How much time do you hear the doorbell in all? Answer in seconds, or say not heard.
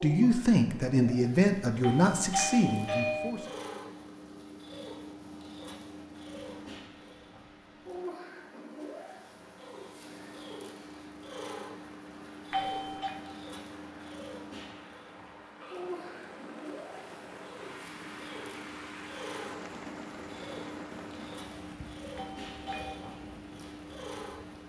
3 s.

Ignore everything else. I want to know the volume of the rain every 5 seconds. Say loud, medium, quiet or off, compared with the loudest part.
off, medium, medium, loud, loud.